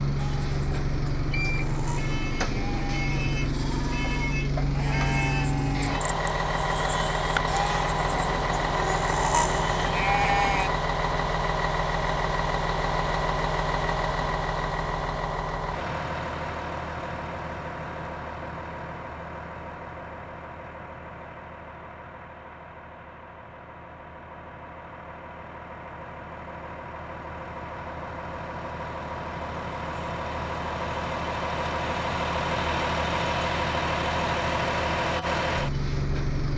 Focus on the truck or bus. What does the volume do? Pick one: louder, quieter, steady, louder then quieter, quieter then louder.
quieter then louder.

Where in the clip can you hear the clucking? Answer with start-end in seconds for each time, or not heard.
not heard.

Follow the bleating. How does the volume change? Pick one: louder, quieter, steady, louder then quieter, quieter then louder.
louder.